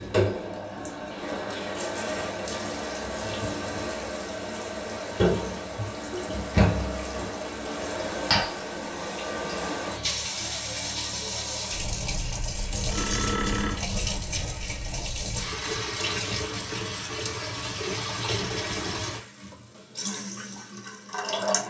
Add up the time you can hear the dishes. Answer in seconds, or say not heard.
not heard.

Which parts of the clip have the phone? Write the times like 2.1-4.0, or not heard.
12.8-13.8.